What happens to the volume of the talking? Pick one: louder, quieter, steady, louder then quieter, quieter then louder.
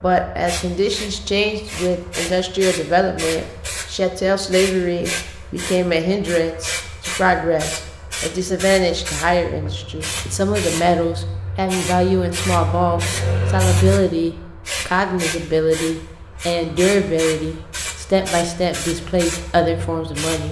steady.